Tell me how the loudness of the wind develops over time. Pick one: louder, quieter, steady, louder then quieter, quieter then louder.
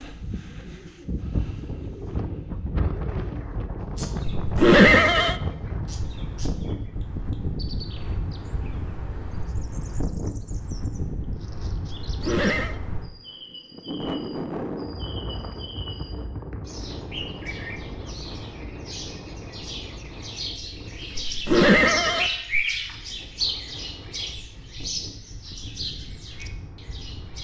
quieter.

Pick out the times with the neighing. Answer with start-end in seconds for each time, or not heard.
4.3-5.3, 12.1-12.8, 21.2-22.6.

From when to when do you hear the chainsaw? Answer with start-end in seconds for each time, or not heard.
not heard.